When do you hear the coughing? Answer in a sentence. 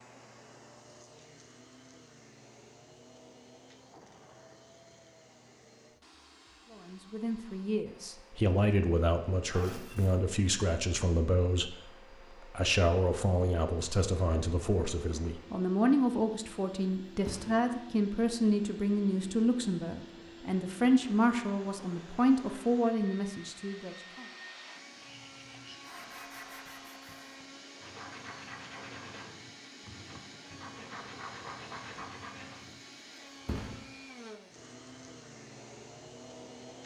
The coughing can't be heard in this clip.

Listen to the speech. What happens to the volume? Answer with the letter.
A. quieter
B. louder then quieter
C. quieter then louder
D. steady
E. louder
D.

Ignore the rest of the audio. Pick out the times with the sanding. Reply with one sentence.
You can hear the sanding from 24.9 to 32.8 s.